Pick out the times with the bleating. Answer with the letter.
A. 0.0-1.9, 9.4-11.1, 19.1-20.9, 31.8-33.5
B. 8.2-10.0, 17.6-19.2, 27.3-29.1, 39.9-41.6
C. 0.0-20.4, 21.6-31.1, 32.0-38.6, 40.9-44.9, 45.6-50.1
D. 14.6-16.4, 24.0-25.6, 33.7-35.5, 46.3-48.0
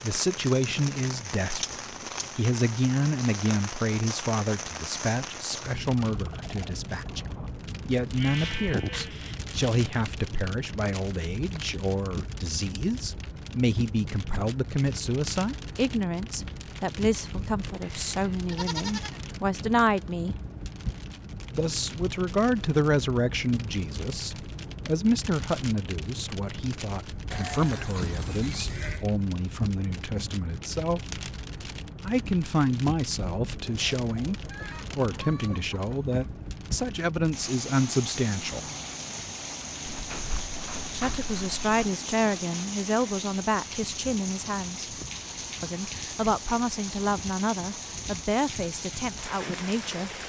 B.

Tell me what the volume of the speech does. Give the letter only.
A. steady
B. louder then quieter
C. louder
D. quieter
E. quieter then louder
A.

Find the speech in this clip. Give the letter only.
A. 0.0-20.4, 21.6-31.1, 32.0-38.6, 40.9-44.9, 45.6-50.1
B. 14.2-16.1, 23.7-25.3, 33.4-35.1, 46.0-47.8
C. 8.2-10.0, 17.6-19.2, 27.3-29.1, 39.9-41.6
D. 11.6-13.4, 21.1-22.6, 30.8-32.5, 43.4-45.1
A.